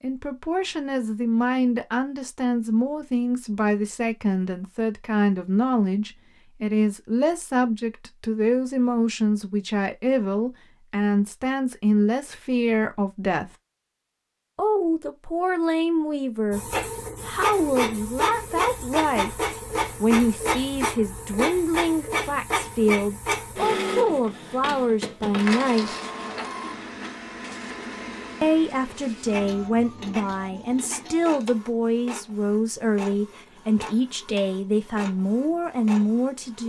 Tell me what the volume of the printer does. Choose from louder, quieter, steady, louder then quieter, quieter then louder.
quieter.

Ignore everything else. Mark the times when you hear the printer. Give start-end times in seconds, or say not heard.
16.5-36.6.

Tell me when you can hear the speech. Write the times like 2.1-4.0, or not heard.
0.0-13.5, 14.6-19.4, 19.9-25.9, 28.4-36.6.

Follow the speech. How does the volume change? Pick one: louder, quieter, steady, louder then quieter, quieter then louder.
steady.